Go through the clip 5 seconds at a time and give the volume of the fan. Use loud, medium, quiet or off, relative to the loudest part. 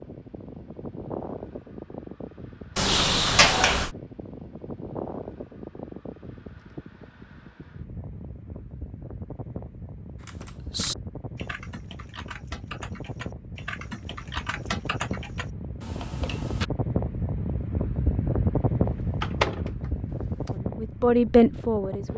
medium, medium, medium, loud, medium.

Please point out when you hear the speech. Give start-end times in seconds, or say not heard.
20.6-22.1.